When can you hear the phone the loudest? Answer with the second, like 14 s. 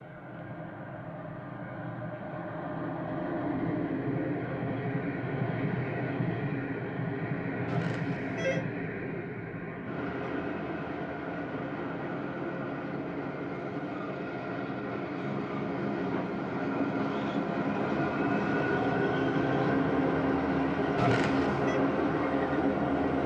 21 s.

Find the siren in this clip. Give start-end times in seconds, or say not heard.
not heard.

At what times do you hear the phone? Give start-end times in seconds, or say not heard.
7.7-8.7, 20.9-21.8.